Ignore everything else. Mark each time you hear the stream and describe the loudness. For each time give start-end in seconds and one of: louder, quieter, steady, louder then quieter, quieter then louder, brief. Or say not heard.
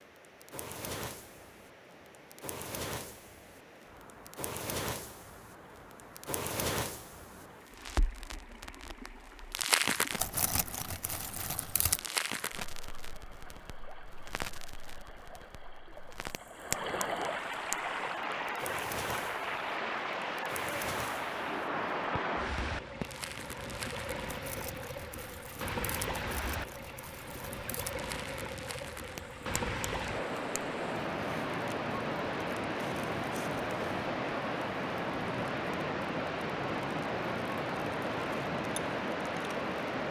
0.0-40.0 louder.